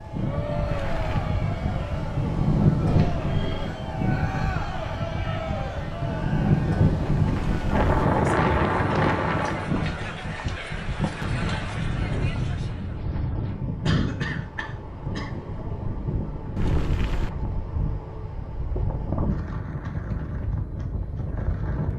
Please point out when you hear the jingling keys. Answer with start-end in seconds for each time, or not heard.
not heard.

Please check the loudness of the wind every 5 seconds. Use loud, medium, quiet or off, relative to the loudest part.
loud, loud, medium, medium, medium.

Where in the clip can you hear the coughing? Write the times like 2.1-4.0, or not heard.
2.9-3.8, 13.8-15.3.